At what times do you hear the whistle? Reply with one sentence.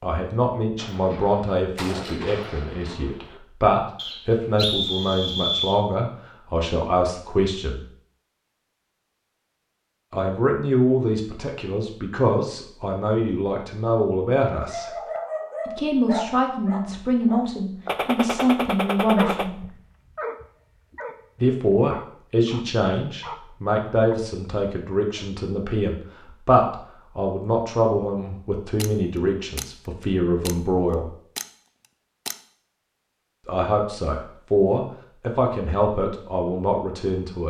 You can hear the whistle from 4.0 to 5.8 s.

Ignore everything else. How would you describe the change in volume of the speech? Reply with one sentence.
The volume of the speech stays about the same.